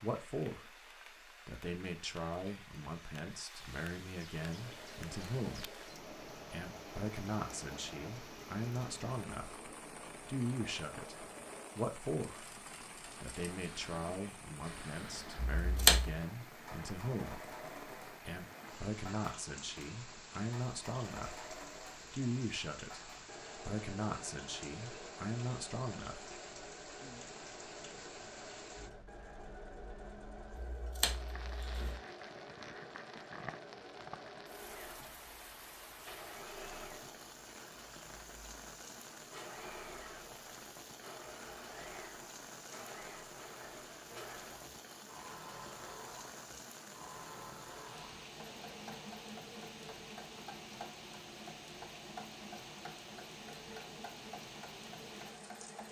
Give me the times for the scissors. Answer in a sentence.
The scissors can be heard from 15.6 to 16.1 s and from 30.6 to 31.9 s.